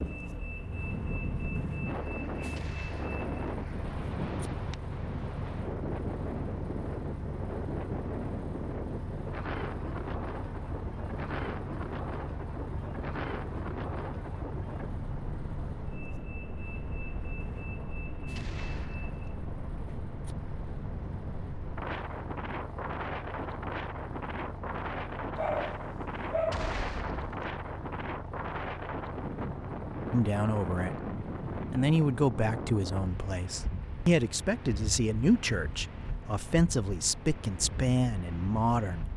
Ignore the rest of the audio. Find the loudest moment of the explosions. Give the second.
27 s.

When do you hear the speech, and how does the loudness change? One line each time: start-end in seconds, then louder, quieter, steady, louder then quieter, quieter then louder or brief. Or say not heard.
30.1-30.9 brief
31.7-39.0 steady.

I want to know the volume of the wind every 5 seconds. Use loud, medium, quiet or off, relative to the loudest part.
loud, loud, loud, medium, loud, loud, loud, medium.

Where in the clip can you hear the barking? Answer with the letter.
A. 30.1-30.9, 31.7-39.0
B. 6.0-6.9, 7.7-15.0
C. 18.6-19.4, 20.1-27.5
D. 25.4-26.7
D.